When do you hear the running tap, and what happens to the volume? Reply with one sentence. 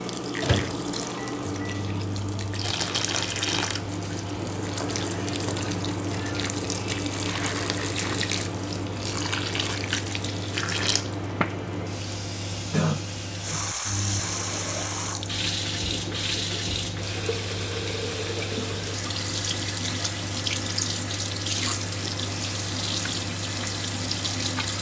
You can hear the running tap from 0.0 to 24.7 s, at a steady volume.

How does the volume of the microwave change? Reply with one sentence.
The volume of the microwave stays about the same.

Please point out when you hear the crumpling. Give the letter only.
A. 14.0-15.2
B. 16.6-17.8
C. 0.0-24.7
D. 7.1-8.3
D.